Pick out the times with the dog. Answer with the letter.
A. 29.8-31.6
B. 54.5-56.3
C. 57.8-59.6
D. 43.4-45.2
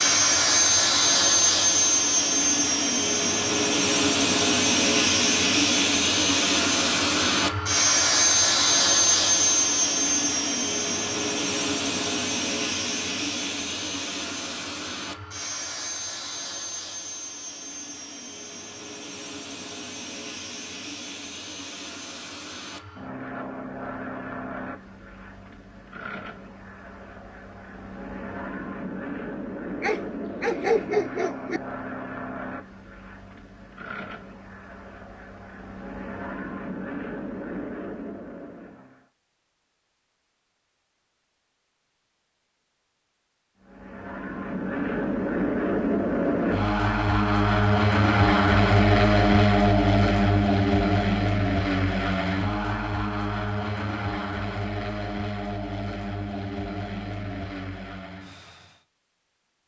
A.